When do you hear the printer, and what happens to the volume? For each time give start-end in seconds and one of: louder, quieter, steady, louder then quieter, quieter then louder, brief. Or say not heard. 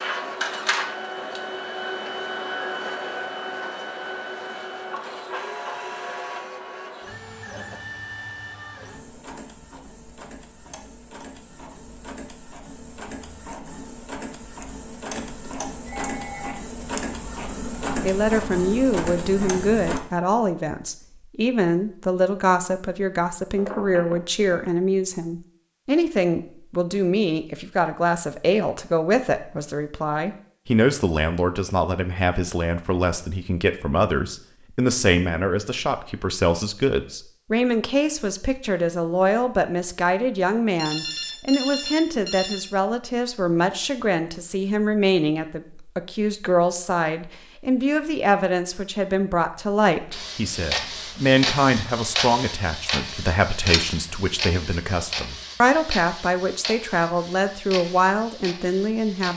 0.0-20.0 quieter then louder
50.1-59.3 quieter.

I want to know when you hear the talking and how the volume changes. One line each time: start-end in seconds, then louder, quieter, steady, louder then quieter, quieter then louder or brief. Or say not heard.
18.0-59.3 steady.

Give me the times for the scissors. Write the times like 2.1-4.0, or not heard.
not heard.